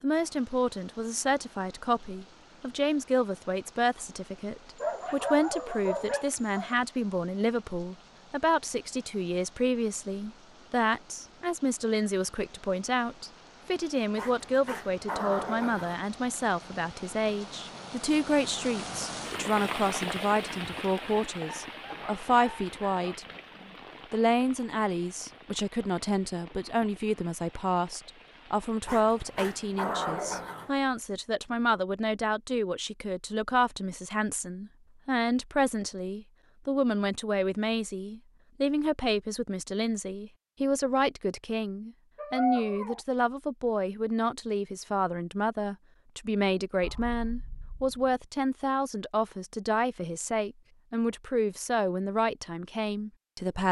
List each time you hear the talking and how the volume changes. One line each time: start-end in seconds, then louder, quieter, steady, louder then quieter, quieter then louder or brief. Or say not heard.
0.0-23.2 steady
24.1-53.6 steady.